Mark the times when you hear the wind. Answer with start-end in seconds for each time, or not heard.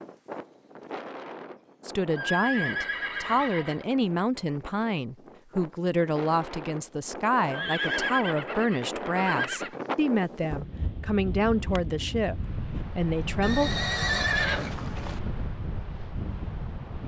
0.0-17.0.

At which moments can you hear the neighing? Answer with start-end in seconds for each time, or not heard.
2.1-3.9, 7.5-9.8, 13.4-15.2.